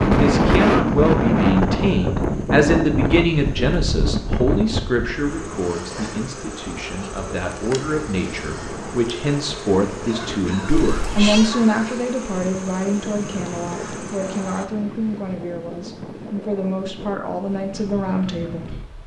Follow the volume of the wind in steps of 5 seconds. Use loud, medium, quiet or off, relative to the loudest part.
loud, quiet, quiet, quiet.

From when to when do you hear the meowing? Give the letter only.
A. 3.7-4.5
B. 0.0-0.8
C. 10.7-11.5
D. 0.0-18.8
C.